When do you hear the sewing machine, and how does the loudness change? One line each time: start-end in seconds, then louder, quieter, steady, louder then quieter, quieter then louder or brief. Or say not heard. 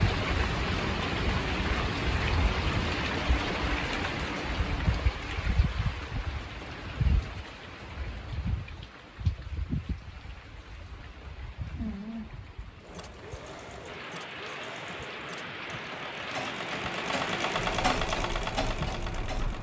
12.8-19.5 louder.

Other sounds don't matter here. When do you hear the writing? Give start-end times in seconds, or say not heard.
not heard.